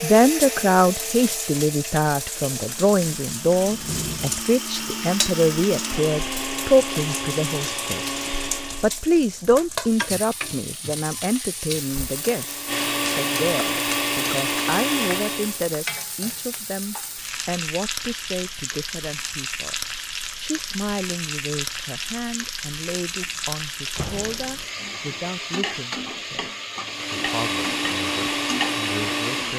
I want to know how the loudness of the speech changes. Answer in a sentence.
The loudness of the speech goes down.